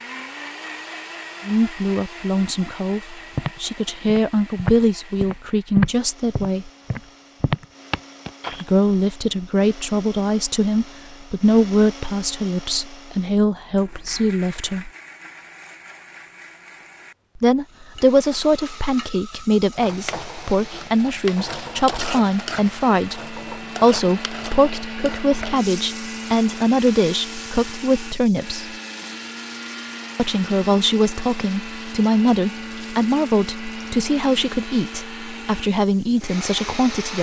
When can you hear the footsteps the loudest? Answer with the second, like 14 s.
6 s.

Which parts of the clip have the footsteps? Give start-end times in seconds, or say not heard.
3.3-8.7.